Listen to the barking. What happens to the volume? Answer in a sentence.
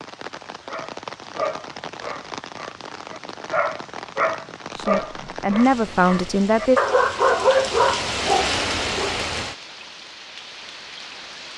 The loudness of the barking goes up.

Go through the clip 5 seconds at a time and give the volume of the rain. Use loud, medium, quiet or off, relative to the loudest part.
medium, loud, medium.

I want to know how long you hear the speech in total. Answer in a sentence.
The speech can be heard for 2 seconds in total.